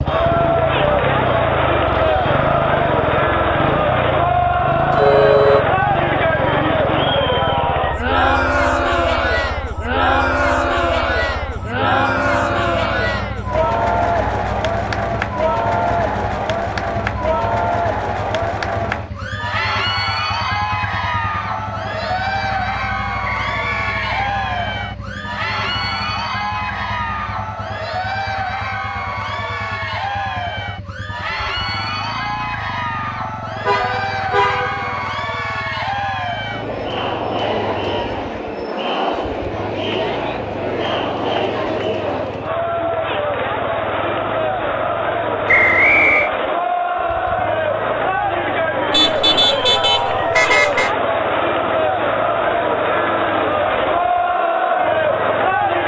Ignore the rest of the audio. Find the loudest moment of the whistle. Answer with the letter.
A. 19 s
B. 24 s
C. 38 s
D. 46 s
D.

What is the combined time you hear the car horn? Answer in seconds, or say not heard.
4 s.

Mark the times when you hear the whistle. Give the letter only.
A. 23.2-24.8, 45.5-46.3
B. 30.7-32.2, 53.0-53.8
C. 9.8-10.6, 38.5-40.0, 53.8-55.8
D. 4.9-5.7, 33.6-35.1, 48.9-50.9
A.